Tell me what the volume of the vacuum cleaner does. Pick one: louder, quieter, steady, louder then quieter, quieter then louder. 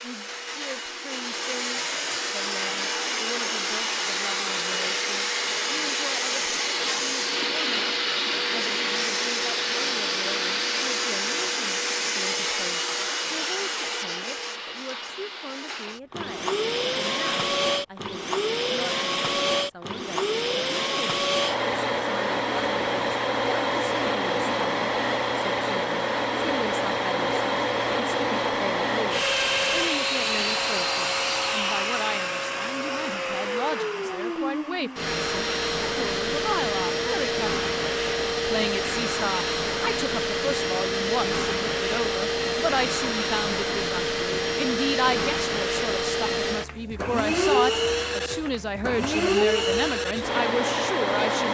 steady.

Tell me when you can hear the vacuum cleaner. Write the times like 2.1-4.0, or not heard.
0.0-51.4.